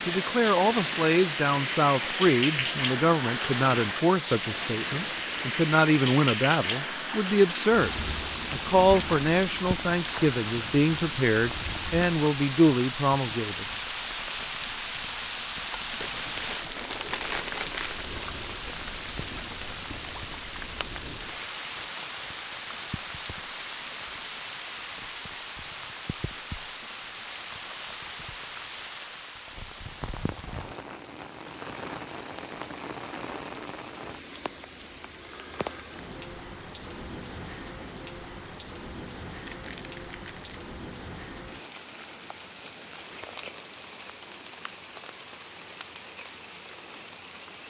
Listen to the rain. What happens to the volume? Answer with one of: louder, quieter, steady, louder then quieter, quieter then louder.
quieter.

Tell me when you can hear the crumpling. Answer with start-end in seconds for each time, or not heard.
4.9-5.4, 15.9-18.1, 39.5-40.5.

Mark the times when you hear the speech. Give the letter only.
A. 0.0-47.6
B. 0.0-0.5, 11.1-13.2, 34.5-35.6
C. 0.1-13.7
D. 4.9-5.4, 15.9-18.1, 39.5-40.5
C.